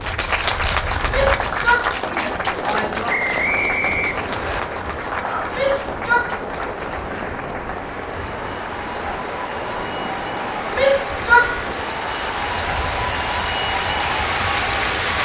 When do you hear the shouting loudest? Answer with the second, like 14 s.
11 s.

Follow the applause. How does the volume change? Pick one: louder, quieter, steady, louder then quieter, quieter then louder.
quieter then louder.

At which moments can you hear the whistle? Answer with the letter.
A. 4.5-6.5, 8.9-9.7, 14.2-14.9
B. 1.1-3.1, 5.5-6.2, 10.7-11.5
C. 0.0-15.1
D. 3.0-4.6
D.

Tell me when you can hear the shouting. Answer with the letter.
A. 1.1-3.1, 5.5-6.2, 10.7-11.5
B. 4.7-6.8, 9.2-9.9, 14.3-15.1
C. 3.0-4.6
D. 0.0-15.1
A.